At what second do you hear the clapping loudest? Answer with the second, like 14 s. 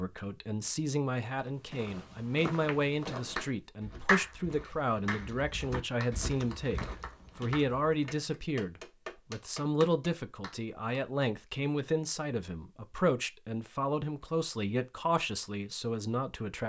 4 s.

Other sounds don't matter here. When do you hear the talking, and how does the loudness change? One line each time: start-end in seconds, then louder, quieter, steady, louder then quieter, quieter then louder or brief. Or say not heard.
0.0-16.6 steady.